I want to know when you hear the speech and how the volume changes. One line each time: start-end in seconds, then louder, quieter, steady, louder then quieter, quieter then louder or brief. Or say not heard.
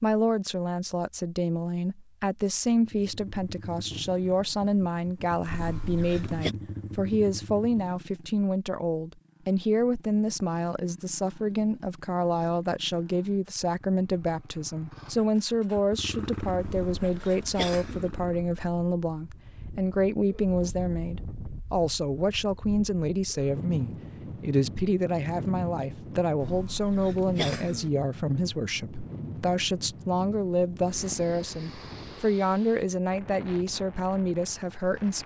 0.0-35.2 steady.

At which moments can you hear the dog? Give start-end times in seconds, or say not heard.
not heard.